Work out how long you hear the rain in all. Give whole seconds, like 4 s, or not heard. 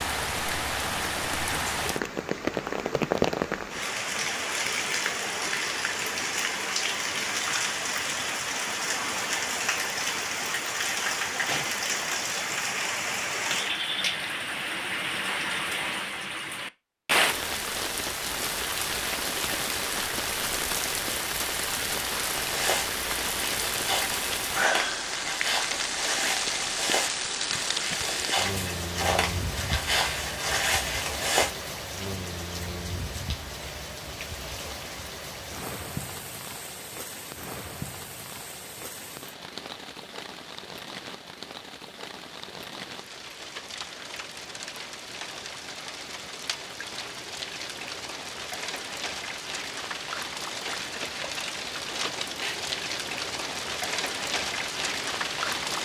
56 s.